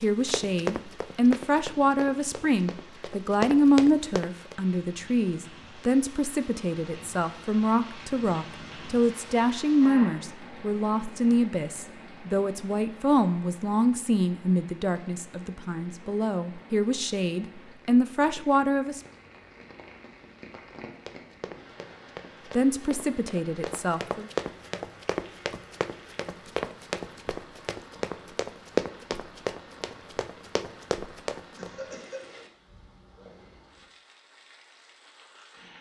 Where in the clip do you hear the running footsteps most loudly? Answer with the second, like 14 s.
29 s.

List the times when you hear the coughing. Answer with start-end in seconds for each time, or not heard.
31.6-32.2.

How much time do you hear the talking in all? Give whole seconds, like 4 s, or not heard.
21 s.